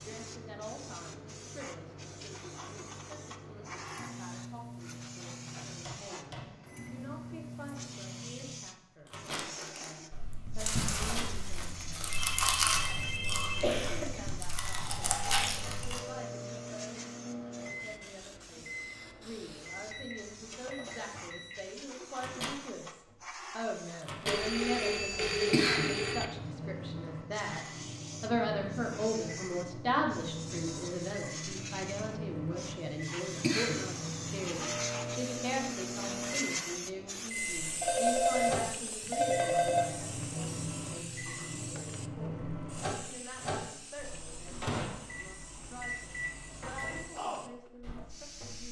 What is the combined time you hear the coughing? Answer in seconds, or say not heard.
2 s.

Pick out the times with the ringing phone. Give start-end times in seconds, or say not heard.
11.5-13.7, 24.2-26.2, 37.8-39.9.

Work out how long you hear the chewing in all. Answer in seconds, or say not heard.
7 s.